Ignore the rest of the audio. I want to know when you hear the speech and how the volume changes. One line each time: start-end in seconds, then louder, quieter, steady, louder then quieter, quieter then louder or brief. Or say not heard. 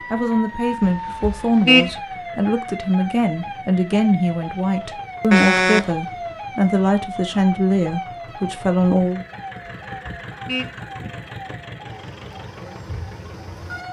0.1-9.2 steady.